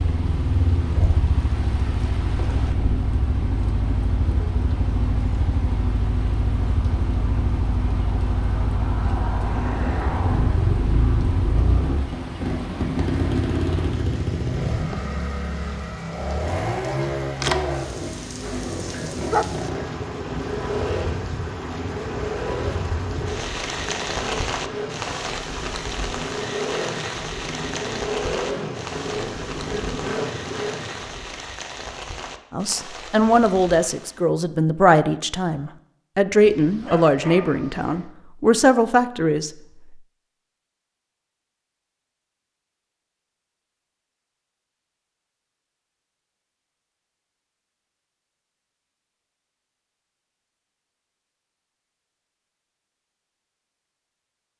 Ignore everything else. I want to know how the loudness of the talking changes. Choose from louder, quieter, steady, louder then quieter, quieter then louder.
steady.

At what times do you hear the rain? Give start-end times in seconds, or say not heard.
0.0-34.2.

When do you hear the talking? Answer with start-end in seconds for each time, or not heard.
32.5-40.0.